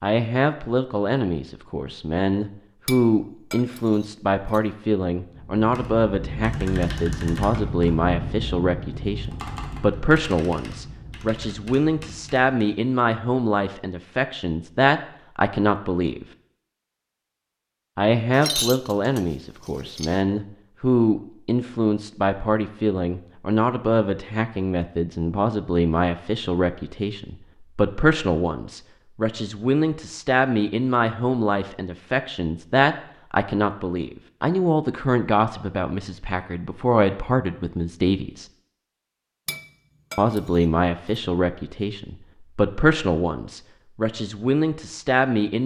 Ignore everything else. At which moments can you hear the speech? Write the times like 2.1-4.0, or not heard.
0.0-16.2, 17.9-38.5, 40.1-45.6.